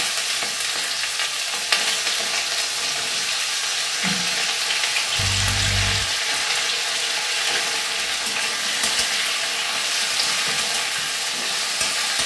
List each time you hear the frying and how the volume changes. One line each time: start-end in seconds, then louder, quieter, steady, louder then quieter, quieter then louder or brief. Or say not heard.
0.0-12.2 steady.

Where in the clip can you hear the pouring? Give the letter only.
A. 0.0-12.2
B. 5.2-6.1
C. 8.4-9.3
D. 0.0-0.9
B.